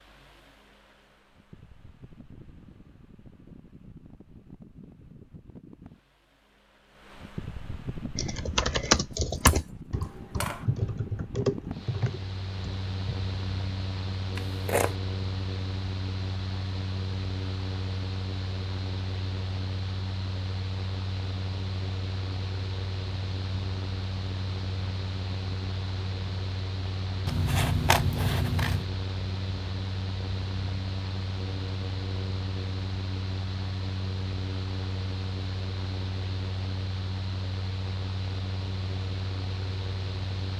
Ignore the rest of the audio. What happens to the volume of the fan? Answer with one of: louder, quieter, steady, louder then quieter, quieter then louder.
louder.